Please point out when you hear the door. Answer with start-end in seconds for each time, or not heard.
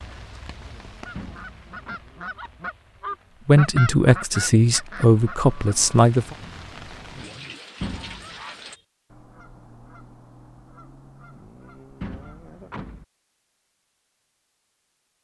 1.1-2.0, 7.8-8.4, 12.0-13.1.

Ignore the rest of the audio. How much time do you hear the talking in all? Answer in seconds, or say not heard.
3 s.